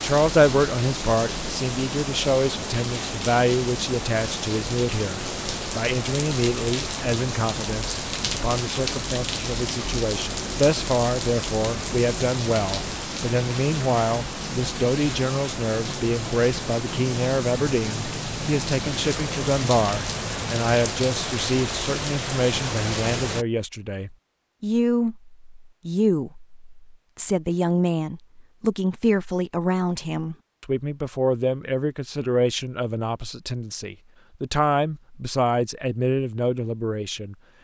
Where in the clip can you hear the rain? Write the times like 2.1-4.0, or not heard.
0.0-23.4.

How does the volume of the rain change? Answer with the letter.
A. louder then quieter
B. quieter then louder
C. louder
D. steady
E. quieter
D.